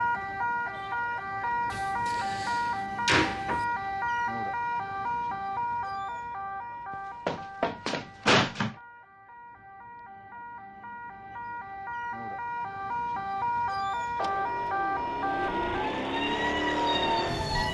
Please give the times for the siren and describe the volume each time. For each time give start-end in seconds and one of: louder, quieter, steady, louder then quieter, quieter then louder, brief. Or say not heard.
0.0-17.6 quieter then louder.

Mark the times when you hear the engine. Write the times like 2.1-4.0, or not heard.
14.2-17.6.